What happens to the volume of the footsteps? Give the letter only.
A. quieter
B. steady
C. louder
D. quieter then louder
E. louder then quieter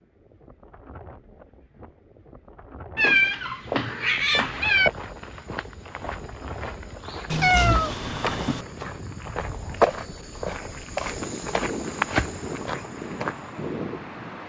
D.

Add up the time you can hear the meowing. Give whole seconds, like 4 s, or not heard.
3 s.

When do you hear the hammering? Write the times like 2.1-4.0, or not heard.
not heard.